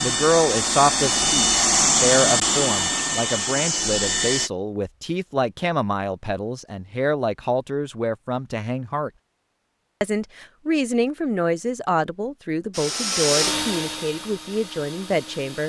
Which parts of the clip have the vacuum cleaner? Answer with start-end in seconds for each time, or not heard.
0.0-4.5, 12.7-15.6.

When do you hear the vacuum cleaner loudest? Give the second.
2 s.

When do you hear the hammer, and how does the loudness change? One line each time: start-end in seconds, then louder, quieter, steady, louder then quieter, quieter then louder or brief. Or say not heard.
not heard.